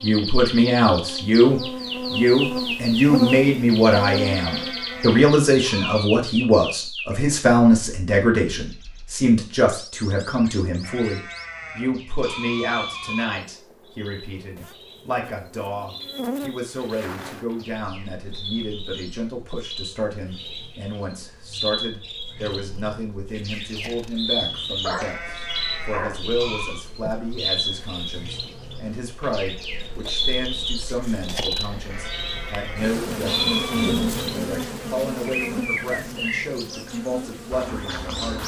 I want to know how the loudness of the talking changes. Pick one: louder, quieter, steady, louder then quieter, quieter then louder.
quieter.